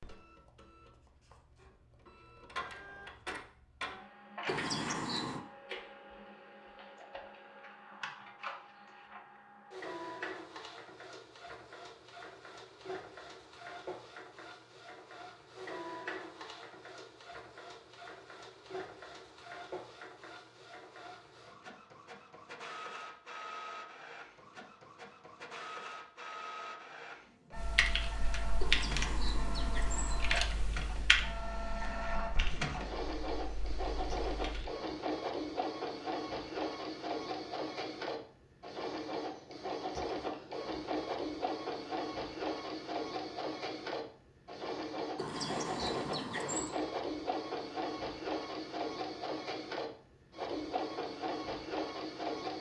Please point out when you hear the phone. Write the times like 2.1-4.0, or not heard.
not heard.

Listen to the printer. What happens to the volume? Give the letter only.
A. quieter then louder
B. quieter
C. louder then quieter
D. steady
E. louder
E.